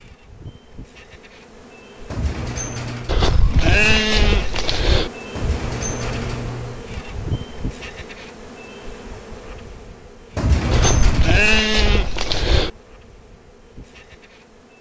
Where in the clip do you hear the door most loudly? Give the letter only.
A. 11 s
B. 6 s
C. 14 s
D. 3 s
A.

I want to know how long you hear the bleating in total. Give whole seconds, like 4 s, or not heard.
4 s.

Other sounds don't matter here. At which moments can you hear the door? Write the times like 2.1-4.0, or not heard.
2.1-3.1, 5.3-6.8, 10.3-11.3.